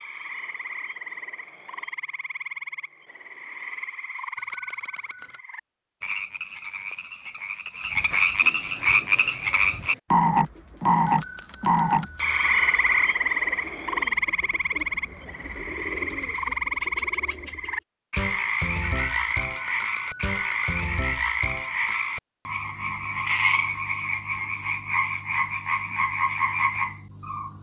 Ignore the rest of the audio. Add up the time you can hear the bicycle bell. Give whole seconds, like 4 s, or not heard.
5 s.